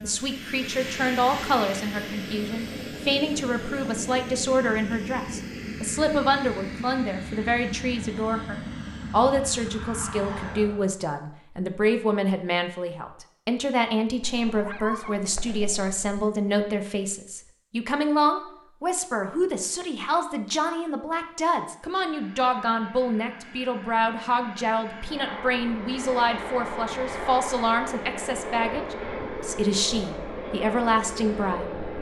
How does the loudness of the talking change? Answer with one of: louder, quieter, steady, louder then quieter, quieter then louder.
steady.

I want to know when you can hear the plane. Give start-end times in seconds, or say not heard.
0.0-11.0, 21.9-31.9.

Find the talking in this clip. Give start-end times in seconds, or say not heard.
0.0-31.7.